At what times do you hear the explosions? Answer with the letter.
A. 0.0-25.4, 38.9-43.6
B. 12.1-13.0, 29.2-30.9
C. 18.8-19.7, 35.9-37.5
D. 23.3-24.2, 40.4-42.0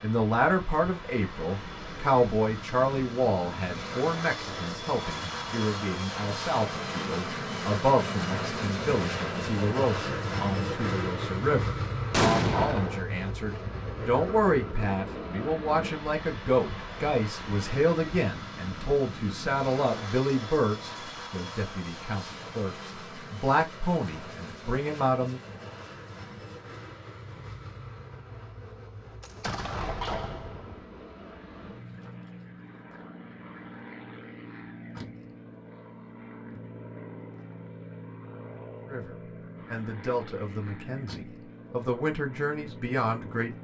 B.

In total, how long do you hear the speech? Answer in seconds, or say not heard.
30 s.